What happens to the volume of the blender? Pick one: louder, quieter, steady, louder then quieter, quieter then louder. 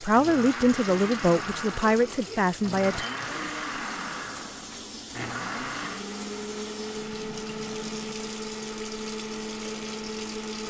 steady.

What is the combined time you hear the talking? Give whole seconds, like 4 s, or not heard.
3 s.